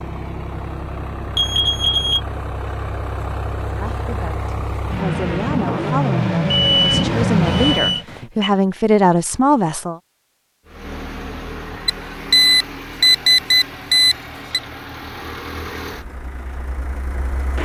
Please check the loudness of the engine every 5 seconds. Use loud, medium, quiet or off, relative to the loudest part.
medium, loud, quiet, quiet.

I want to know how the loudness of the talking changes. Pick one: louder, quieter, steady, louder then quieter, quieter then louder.
louder.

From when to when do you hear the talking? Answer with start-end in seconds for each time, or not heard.
3.6-9.9.